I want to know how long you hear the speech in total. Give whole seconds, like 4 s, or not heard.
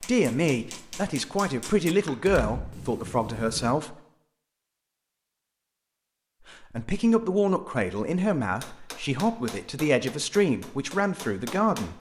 9 s.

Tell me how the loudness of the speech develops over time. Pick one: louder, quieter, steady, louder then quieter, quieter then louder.
steady.